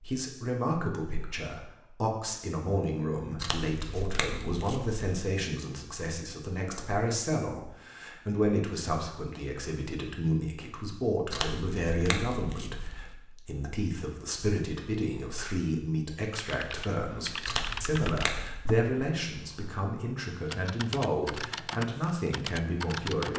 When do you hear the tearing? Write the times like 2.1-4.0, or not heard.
3.4-5.0, 11.3-13.1, 17.4-18.6.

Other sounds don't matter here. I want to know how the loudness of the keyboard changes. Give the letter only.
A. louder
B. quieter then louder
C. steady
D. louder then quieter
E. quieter
B.